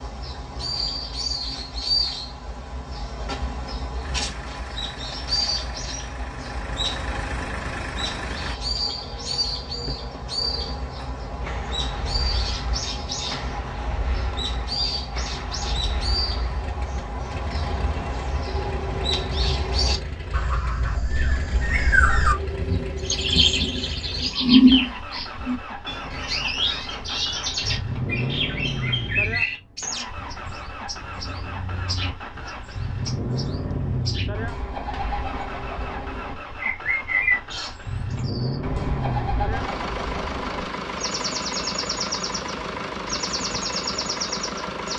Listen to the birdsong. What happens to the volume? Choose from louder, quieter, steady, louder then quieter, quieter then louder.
louder then quieter.